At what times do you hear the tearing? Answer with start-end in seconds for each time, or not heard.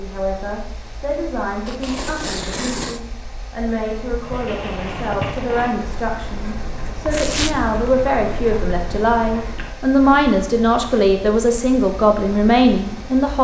1.6-3.0, 7.1-7.5.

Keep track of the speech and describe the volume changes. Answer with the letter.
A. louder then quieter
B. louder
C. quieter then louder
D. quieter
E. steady
B.